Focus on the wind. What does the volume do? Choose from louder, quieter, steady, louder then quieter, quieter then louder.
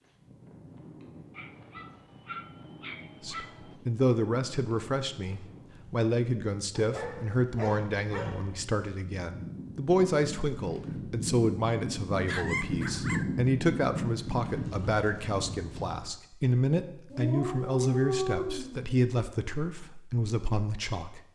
louder.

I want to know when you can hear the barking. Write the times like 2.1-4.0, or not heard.
1.4-3.8, 6.8-8.6, 12.2-13.2, 17.1-18.9.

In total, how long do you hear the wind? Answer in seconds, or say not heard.
16 s.